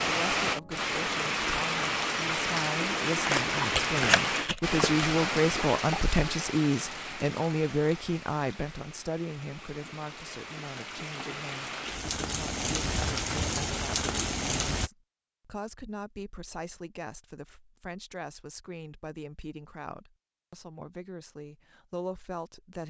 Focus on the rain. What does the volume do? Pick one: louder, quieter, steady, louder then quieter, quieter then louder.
quieter then louder.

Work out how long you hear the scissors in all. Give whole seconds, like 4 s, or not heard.
2 s.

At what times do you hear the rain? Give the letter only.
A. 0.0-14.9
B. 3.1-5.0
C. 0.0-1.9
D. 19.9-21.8
A.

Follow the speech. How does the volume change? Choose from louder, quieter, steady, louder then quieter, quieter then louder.
louder then quieter.